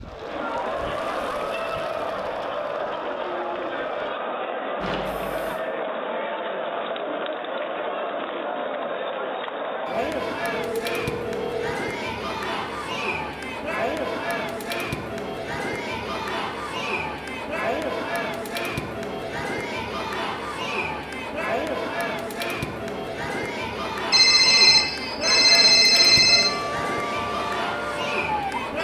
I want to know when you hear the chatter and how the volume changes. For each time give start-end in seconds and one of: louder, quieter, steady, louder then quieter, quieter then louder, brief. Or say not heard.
0.0-28.8 steady.